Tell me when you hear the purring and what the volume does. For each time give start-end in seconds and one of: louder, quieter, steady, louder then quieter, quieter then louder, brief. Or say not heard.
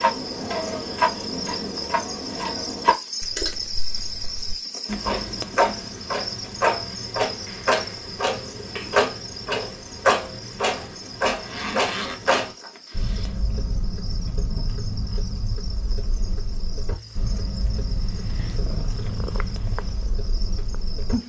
16.9-21.2 louder then quieter.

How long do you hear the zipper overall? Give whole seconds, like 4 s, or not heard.
2 s.